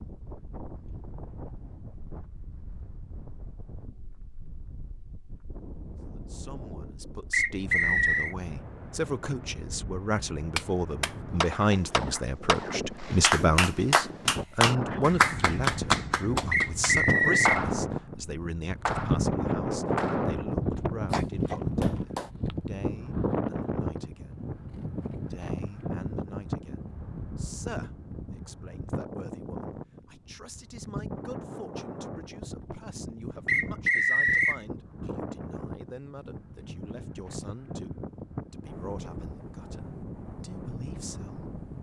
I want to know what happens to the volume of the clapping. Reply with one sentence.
The loudness of the clapping goes up, then down.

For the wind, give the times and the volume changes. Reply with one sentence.
You can hear the wind from 0.0 to 41.7 s, getting louder then quieter.